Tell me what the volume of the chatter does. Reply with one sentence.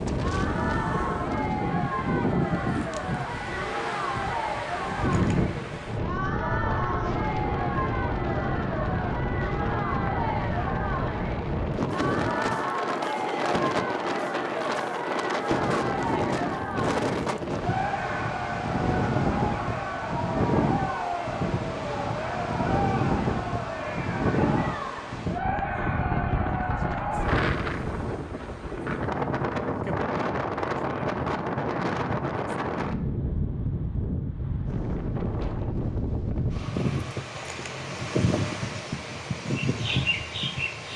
The loudness of the chatter stays about the same.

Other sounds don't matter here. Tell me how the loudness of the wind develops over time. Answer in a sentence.
The loudness of the wind stays about the same.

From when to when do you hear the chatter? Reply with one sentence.
The chatter can be heard from 0.2 to 27.4 s.